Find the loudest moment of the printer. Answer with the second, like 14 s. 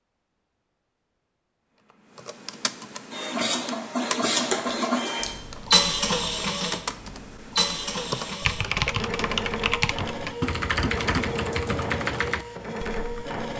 6 s.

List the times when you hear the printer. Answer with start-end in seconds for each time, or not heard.
3.1-13.5.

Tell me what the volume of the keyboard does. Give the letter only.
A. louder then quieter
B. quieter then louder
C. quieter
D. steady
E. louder
E.